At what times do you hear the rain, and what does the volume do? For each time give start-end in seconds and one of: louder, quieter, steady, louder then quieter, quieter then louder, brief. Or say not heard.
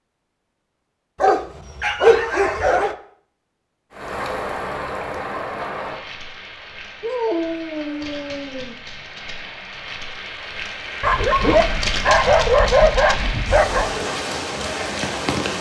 3.9-15.5 quieter then louder.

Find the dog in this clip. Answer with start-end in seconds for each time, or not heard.
1.2-3.0, 7.0-8.8, 11.0-13.9.